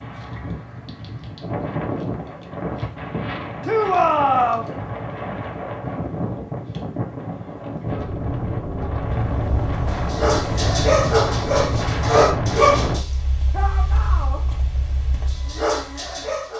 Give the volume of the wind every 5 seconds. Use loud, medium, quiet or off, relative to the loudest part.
medium, loud, loud, off.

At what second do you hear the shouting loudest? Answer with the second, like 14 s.
4 s.